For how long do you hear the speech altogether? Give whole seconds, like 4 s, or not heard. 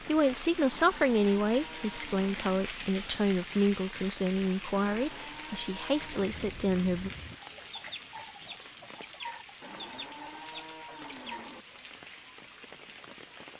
7 s.